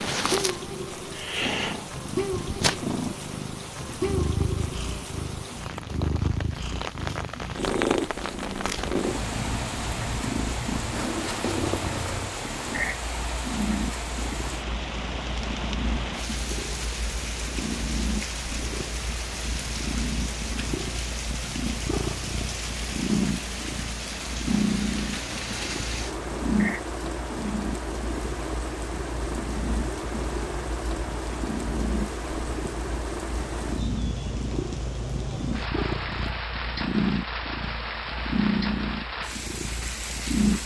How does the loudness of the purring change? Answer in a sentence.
The loudness of the purring stays about the same.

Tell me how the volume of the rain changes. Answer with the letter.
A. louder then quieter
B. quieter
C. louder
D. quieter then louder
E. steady
E.